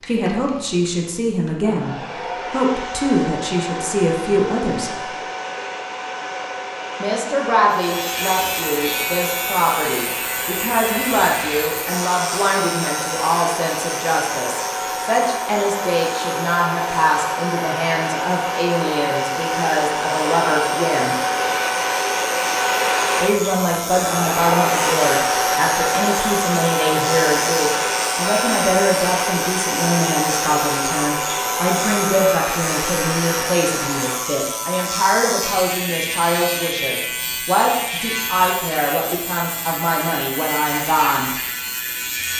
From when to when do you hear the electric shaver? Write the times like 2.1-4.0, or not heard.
7.7-42.3.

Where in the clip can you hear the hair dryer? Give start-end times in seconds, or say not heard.
0.0-34.2.